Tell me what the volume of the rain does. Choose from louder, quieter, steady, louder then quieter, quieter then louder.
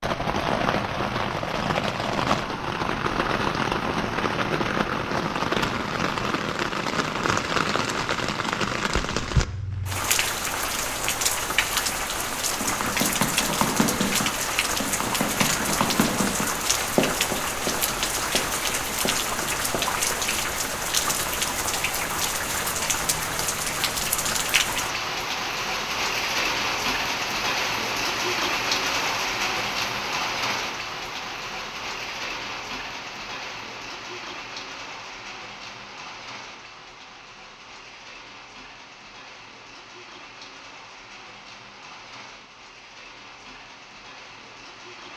quieter.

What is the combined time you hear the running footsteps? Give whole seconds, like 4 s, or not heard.
7 s.